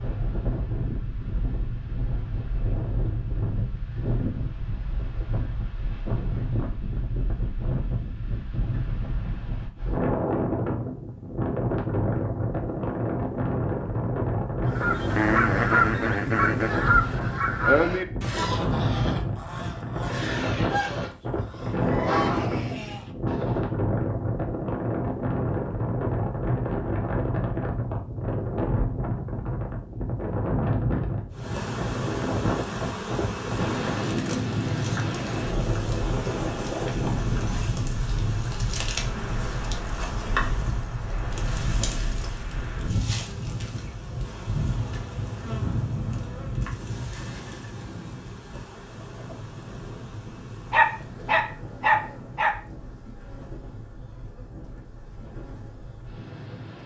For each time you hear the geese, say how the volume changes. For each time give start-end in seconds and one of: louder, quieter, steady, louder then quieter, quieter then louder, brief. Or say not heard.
14.7-23.7 quieter.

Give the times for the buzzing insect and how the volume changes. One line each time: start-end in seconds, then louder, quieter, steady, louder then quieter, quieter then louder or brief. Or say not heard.
31.3-56.8 quieter.